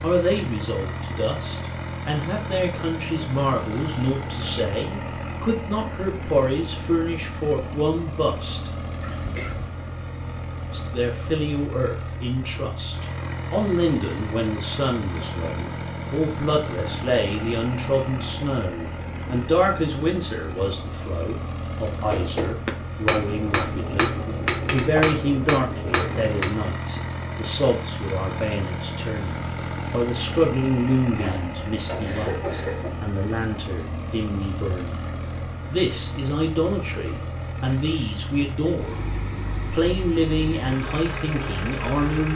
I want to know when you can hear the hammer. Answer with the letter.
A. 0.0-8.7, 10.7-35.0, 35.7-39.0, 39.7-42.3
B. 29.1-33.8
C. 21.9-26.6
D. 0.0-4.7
C.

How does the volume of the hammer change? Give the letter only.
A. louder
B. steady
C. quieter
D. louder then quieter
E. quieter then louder
B.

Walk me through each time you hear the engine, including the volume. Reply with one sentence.
You can hear the engine from 0.0 to 42.3 s, at a steady volume.